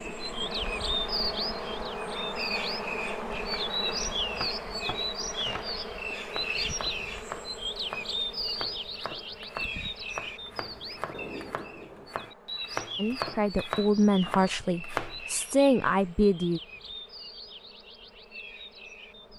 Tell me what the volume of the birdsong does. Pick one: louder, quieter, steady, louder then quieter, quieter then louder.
quieter.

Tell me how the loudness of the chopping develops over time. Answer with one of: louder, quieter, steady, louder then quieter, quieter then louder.
louder.